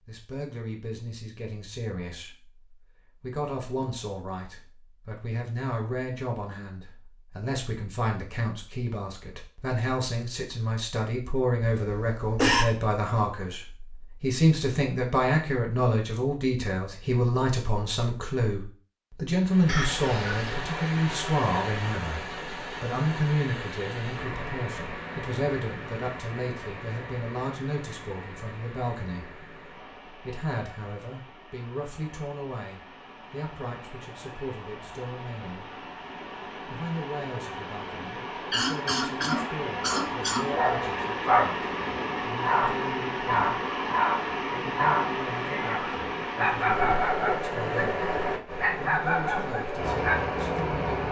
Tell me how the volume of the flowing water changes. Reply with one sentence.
The volume of the flowing water goes down, then up.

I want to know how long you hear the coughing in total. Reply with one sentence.
The coughing can be heard for 4 seconds in total.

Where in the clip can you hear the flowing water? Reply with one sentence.
The flowing water can be heard from 19.4 to 51.0 s.